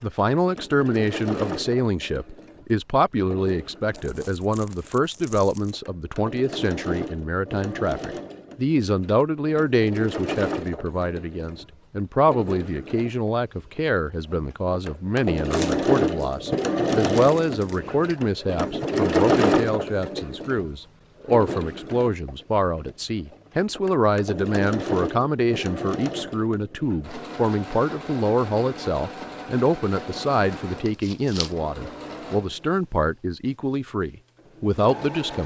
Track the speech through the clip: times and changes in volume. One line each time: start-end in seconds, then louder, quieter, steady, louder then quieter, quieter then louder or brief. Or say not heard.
0.0-35.4 steady.